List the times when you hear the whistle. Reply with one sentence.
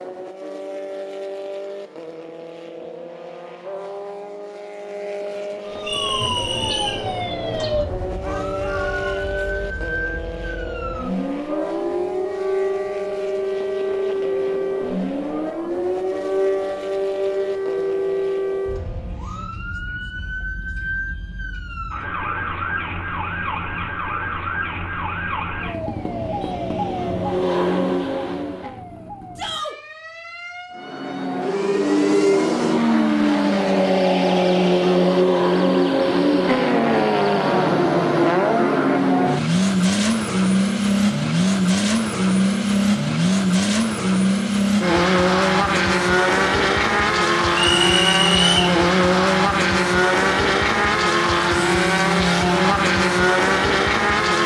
The whistle can be heard from 5.8 to 7.0 s and from 47.5 to 48.7 s.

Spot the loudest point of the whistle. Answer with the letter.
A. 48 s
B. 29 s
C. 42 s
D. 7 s
A.